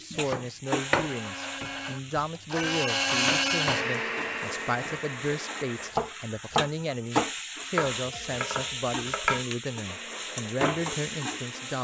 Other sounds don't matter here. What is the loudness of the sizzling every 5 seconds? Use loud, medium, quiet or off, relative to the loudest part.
medium, loud, loud.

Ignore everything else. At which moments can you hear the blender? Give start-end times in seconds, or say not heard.
0.0-6.0, 9.8-11.7.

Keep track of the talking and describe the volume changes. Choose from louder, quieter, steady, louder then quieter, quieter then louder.
steady.